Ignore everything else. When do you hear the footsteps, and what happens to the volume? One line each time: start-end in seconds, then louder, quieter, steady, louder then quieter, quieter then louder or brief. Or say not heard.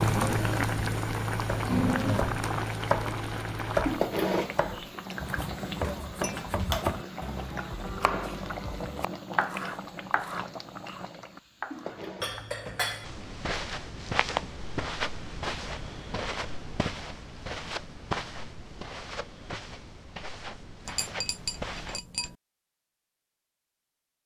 13.0-22.3 quieter.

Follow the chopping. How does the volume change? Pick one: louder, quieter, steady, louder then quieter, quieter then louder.
quieter.